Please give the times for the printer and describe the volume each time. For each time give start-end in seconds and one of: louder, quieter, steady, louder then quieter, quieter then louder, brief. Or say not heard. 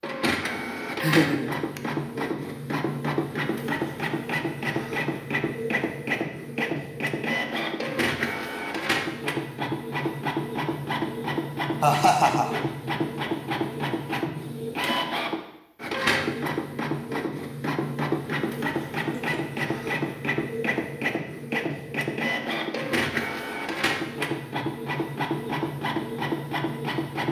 0.0-27.2 steady.